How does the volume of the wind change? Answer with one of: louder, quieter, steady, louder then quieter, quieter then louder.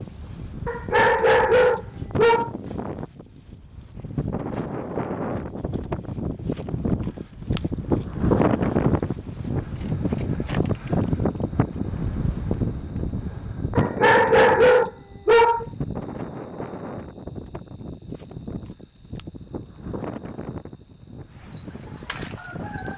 louder then quieter.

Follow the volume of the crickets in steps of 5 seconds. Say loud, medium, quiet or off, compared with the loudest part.
medium, loud, loud, loud, loud.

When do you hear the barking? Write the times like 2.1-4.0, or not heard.
0.7-2.5, 13.8-15.7.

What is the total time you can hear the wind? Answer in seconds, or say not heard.
23 s.